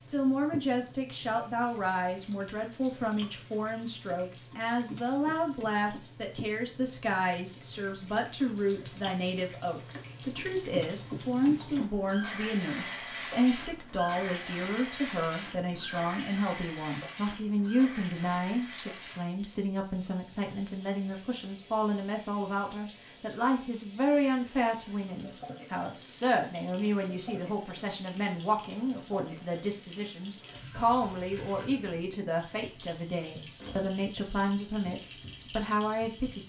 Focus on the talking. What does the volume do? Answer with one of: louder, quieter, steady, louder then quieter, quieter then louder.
steady.